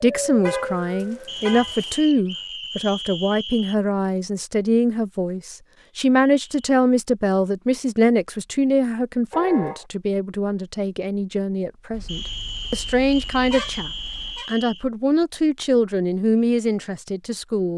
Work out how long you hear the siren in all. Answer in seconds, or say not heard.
2 s.